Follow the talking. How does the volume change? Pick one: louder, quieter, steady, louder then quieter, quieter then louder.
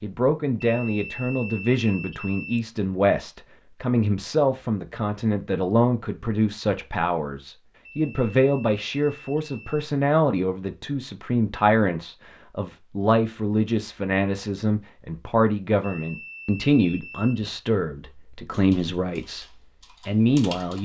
steady.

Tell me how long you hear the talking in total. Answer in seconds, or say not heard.
21 s.